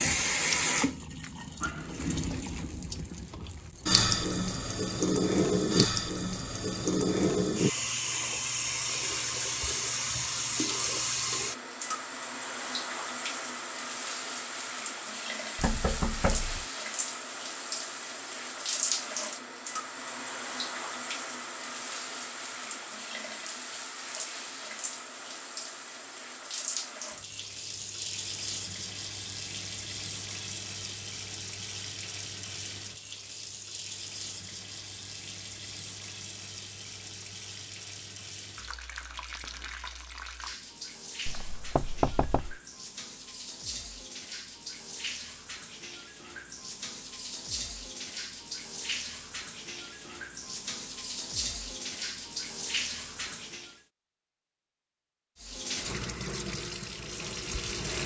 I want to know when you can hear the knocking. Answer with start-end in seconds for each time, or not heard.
15.6-16.6, 41.2-42.6.